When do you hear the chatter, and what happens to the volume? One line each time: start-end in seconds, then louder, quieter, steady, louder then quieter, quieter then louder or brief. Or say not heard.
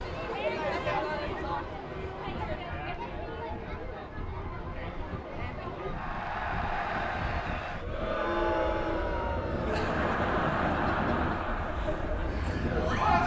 0.0-13.2 quieter then louder.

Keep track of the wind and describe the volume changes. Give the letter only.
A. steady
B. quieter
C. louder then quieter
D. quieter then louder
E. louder
E.